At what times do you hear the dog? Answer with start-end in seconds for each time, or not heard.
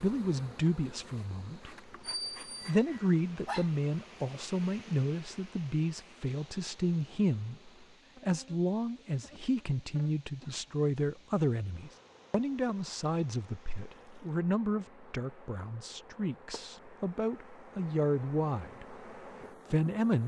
2.0-3.7.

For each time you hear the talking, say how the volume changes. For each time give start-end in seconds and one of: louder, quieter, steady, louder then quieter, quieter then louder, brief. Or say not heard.
0.0-1.8 brief
2.6-19.1 steady
19.7-20.2 brief.